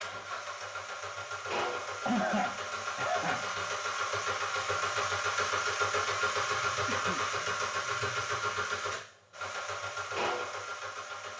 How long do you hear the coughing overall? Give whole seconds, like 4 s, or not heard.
2 s.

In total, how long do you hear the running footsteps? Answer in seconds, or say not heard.
not heard.